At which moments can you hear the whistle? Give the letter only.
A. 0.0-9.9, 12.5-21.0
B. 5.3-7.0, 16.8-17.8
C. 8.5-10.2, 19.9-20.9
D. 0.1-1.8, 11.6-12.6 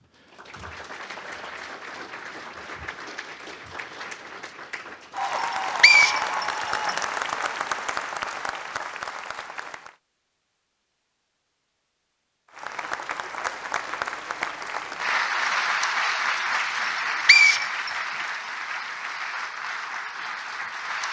B.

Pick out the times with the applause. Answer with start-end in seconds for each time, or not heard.
0.0-9.9, 12.5-21.0.